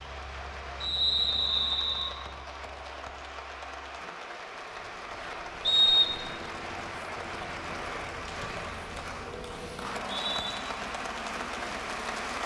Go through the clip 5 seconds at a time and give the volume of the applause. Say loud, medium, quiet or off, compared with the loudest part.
medium, loud, loud.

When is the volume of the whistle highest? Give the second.
6 s.